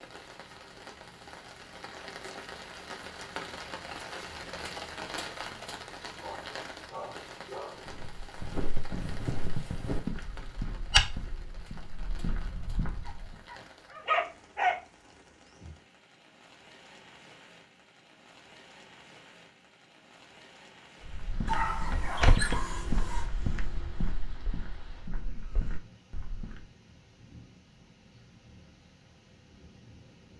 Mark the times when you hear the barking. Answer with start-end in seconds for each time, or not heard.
6.2-7.8, 13.1-14.8, 21.4-23.2.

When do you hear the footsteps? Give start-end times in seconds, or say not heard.
7.8-13.4, 21.1-26.6.